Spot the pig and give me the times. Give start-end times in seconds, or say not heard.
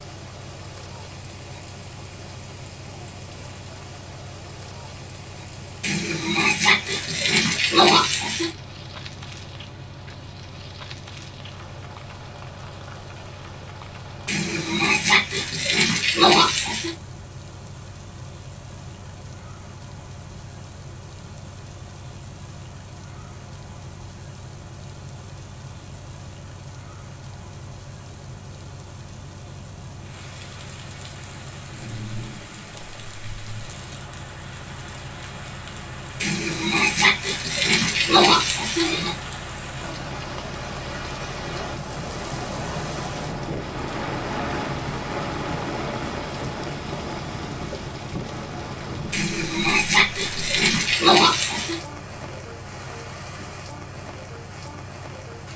5.8-8.5, 14.2-16.9, 36.2-39.1, 49.1-51.8.